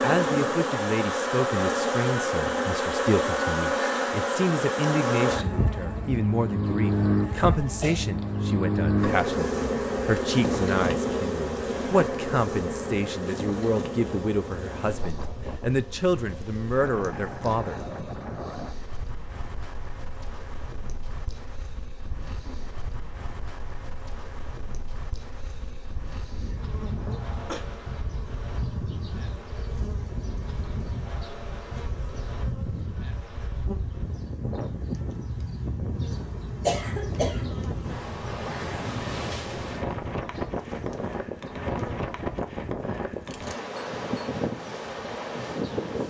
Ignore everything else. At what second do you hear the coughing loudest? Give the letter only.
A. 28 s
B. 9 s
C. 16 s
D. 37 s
D.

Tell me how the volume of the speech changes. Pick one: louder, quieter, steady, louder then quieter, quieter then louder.
steady.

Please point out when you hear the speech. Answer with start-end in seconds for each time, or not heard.
0.0-17.8.